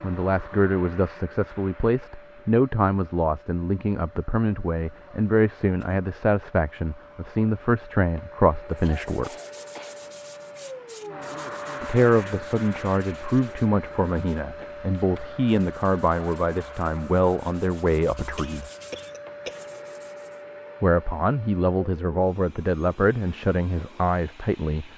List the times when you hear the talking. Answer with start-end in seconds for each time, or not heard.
0.0-9.3, 11.8-18.6, 20.8-24.9.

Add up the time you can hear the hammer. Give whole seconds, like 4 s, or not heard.
not heard.